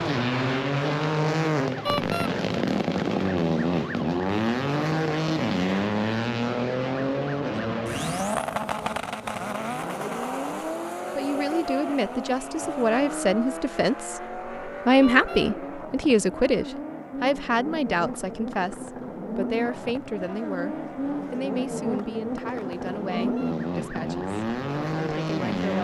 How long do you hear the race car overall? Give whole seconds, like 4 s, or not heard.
26 s.